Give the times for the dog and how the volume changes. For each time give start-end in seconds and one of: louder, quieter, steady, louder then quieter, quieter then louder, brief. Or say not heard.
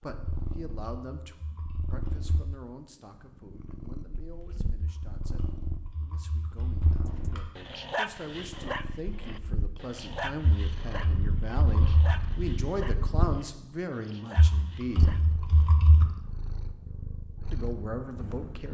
7.0-15.8 quieter.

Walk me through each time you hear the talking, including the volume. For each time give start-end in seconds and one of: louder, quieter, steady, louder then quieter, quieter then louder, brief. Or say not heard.
0.0-15.1 quieter then louder
17.5-18.6 brief.